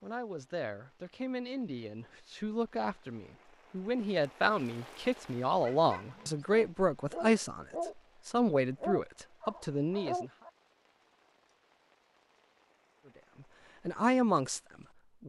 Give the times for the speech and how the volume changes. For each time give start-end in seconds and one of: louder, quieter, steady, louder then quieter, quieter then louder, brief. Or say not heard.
0.0-10.3 louder
13.4-15.2 brief.